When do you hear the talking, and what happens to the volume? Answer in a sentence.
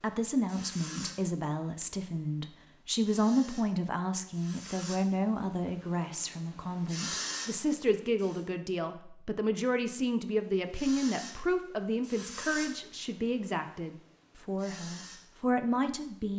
You can hear the talking from 0.0 to 16.3 s, at a steady volume.